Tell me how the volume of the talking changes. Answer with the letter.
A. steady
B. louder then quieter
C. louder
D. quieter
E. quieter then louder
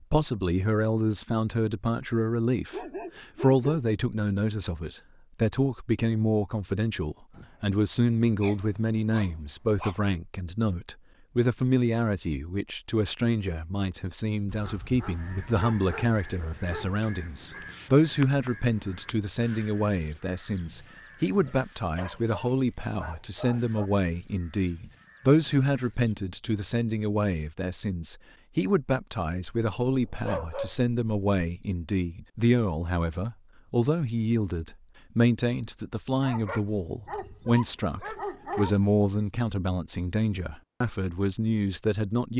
A.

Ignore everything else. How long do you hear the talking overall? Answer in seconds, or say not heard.
42 s.